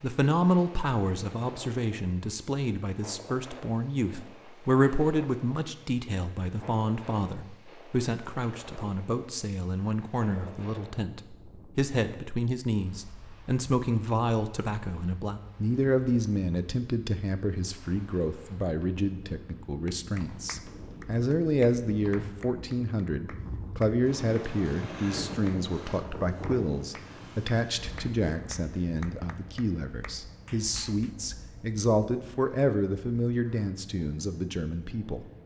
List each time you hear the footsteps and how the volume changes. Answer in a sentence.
You can't hear the footsteps here.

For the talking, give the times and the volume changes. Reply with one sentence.
The talking can be heard from 0.0 to 35.2 s, at a steady volume.